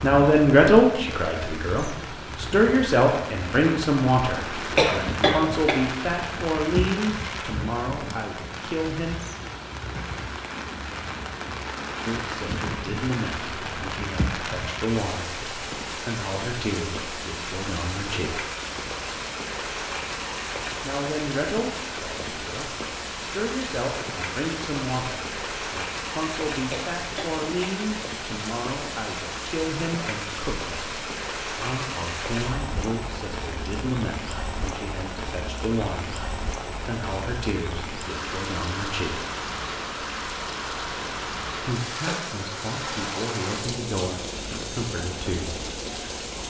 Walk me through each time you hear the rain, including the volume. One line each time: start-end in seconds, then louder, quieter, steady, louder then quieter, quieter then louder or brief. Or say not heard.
0.0-46.4 steady.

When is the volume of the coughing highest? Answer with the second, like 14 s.
5 s.